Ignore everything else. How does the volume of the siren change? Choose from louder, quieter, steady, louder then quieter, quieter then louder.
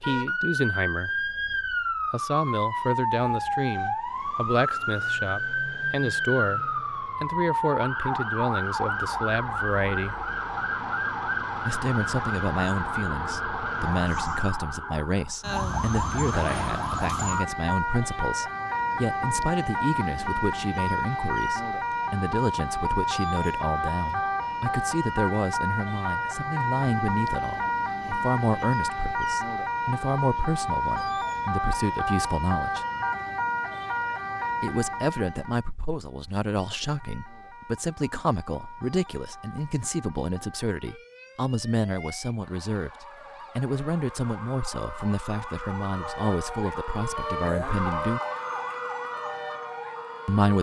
quieter.